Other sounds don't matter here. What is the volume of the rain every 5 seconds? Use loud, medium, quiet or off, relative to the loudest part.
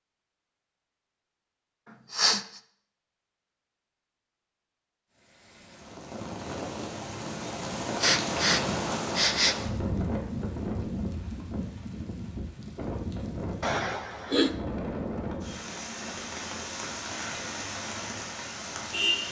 off, loud, loud, loud.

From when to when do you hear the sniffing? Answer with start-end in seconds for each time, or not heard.
2.1-2.6, 8.0-9.6, 13.6-14.6.